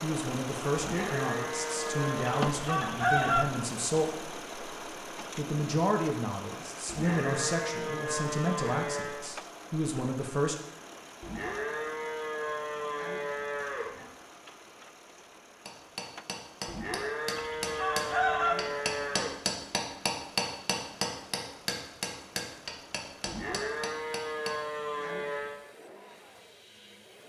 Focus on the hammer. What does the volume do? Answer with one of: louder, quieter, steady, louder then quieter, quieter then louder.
louder then quieter.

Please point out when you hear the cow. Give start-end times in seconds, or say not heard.
0.8-2.5, 6.8-9.2, 11.2-14.1, 16.6-19.4, 23.2-25.6.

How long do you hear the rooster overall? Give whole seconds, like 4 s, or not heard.
2 s.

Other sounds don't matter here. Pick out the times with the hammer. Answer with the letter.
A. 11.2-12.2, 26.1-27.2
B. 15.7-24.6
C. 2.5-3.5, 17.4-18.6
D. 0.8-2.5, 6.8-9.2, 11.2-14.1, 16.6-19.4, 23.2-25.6
B.